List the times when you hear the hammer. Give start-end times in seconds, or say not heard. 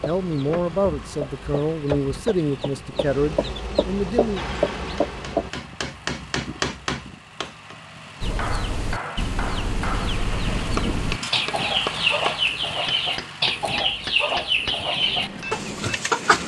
4.3-16.0.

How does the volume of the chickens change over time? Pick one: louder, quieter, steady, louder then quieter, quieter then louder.
louder.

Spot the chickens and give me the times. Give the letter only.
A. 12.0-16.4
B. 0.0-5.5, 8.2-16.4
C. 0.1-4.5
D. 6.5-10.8
B.